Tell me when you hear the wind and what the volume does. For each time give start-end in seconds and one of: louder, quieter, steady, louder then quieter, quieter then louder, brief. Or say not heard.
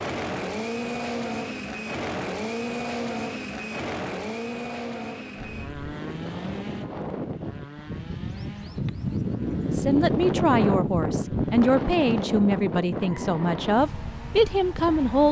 5.3-15.2 louder then quieter.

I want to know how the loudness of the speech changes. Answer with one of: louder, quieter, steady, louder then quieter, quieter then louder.
steady.